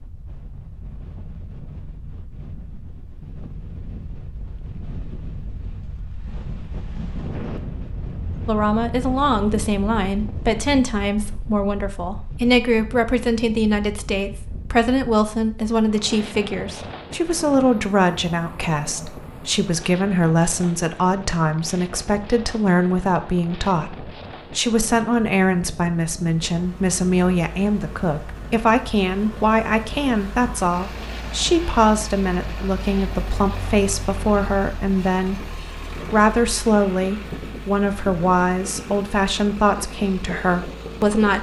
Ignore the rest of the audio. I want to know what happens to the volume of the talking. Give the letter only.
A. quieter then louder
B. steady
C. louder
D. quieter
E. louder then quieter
B.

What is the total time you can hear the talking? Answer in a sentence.
You can hear the talking for 33 seconds altogether.